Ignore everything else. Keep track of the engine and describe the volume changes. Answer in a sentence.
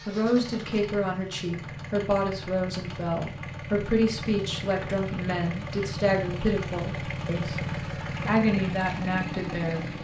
The loudness of the engine goes up.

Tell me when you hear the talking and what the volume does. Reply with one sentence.
The talking can be heard from 0.1 to 9.9 s, at a steady volume.